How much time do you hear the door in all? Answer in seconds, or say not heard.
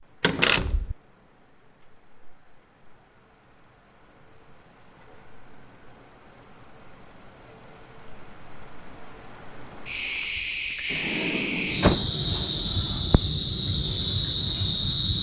2 s.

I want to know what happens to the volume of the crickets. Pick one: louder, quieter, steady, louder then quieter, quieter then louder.
louder.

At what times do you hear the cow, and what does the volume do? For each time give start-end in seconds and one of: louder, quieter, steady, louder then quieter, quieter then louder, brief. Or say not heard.
not heard.